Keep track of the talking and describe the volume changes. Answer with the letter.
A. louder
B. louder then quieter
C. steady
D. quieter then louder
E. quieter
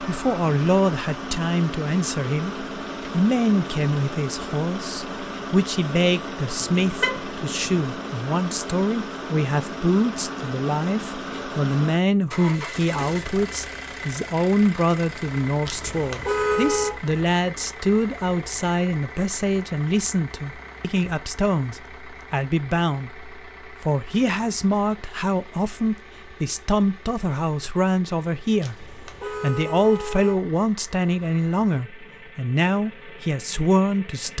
C.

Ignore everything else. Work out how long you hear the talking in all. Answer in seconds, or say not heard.
34 s.